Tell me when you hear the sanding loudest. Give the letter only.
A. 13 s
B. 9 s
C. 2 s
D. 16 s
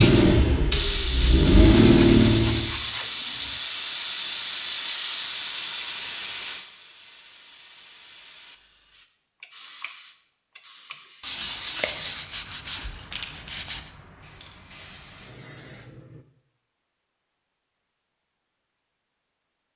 C.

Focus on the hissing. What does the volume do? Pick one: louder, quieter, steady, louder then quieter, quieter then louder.
quieter.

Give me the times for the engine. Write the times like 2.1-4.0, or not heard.
0.0-2.8.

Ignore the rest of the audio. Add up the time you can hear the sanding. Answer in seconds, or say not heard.
5 s.